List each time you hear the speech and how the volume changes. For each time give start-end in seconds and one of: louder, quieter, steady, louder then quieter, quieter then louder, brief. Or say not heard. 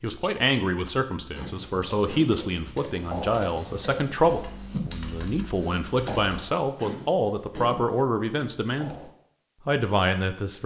0.0-8.9 steady
9.7-10.6 brief.